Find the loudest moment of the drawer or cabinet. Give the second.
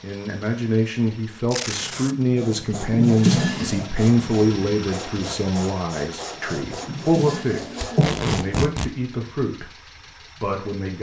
3 s.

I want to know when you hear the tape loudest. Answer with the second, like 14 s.
8 s.